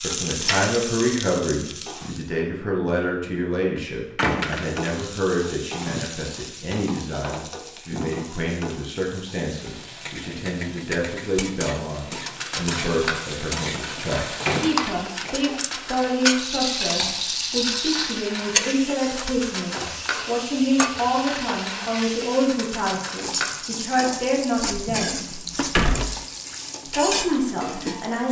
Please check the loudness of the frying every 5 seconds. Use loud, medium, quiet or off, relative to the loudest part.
loud, medium, loud, loud, loud, loud.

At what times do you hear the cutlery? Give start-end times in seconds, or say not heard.
12.2-23.8.